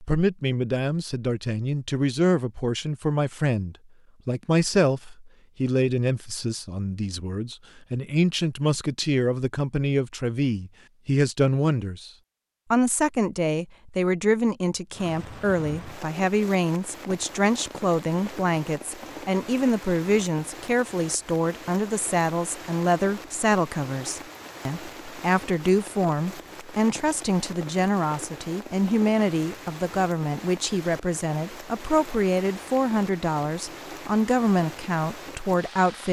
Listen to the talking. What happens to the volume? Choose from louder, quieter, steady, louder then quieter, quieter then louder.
steady.